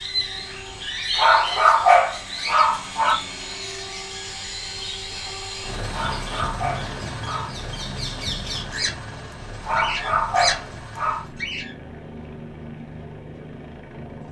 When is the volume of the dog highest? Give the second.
2 s.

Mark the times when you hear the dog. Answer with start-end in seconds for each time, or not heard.
1.1-3.1, 5.9-7.5, 9.6-11.2.